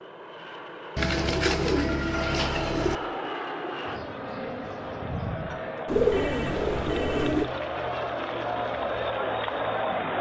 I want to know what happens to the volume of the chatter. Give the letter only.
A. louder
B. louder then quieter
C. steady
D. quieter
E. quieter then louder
A.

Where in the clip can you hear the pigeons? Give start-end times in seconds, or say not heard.
0.9-3.0, 5.8-7.5.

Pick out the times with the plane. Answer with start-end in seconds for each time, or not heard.
0.0-10.1.